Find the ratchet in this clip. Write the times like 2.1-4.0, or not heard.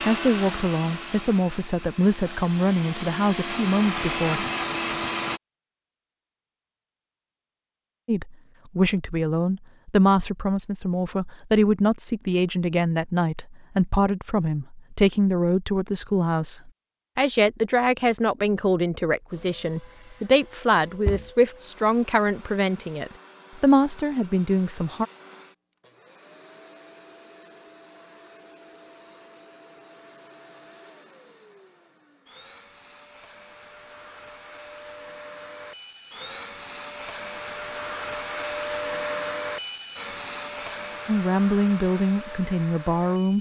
not heard.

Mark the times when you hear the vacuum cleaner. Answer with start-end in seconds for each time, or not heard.
0.0-5.4, 19.3-43.3.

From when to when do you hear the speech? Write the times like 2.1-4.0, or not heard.
0.1-4.5, 8.1-25.1, 41.0-43.3.